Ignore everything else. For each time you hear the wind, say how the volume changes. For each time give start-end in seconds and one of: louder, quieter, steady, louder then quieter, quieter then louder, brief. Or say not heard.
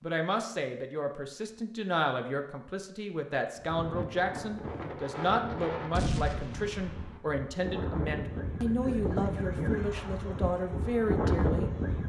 3.5-12.0 louder.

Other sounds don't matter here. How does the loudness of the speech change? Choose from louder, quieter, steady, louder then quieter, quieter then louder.
steady.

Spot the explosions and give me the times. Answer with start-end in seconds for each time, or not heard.
5.9-7.2.